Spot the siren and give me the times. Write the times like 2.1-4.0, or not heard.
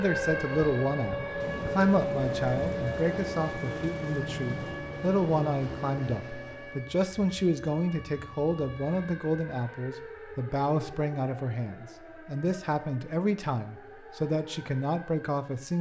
0.0-15.7.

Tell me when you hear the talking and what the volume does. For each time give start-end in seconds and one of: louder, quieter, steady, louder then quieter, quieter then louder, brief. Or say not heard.
0.0-15.7 steady.